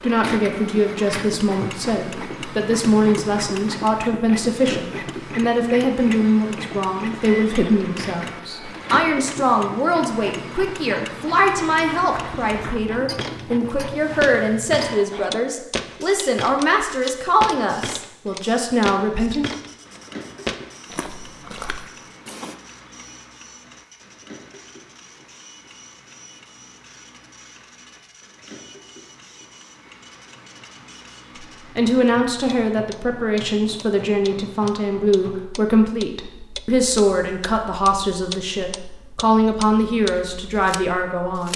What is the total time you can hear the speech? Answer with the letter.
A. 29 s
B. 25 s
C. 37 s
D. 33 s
A.